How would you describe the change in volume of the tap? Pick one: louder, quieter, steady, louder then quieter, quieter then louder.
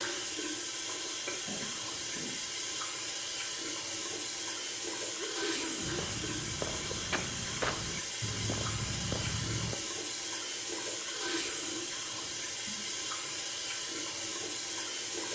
steady.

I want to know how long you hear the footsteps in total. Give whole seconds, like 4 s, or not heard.
4 s.